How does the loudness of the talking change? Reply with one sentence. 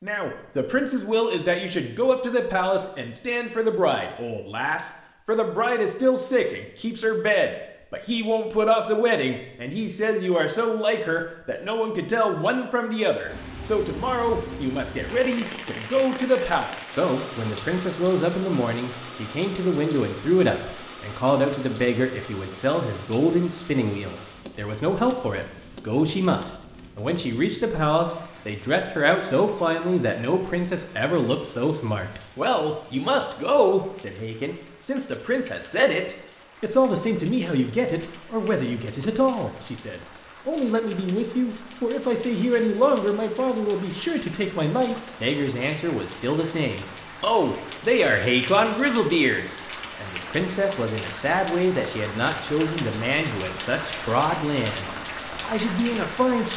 The loudness of the talking stays about the same.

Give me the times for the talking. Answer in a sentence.
The talking can be heard from 0.0 to 56.5 s.